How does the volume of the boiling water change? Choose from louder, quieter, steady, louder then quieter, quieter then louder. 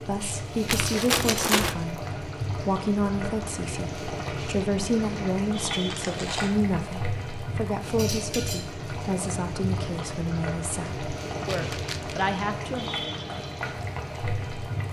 steady.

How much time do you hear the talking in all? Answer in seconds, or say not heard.
13 s.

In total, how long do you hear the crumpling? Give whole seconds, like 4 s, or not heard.
3 s.